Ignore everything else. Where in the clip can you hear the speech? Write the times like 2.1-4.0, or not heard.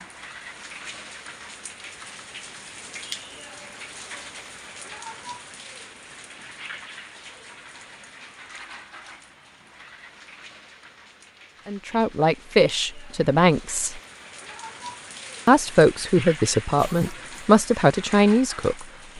11.7-14.0, 15.4-18.9.